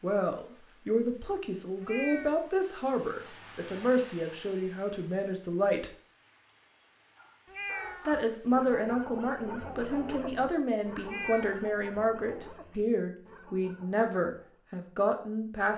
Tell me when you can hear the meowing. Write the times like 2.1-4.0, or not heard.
1.8-2.5, 7.5-8.2, 11.0-11.7.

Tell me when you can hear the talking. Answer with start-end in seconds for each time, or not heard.
0.0-5.9, 8.1-15.7.